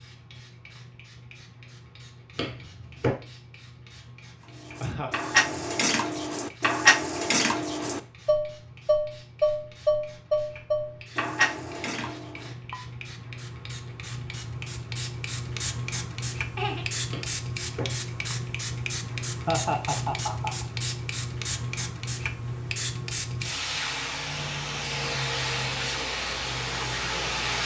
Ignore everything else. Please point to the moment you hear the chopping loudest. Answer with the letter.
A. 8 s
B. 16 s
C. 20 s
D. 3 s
D.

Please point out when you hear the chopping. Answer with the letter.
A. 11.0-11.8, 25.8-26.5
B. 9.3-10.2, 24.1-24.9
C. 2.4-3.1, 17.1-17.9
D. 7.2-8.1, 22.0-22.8
C.